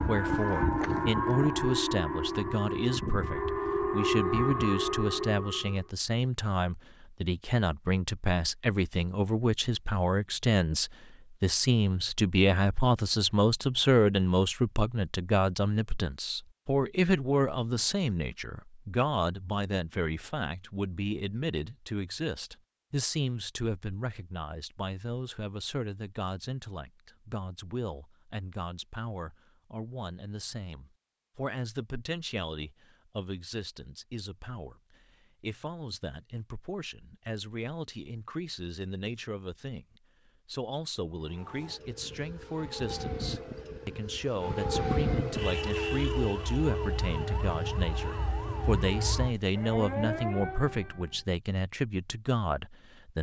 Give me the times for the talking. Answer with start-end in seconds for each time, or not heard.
0.0-53.1.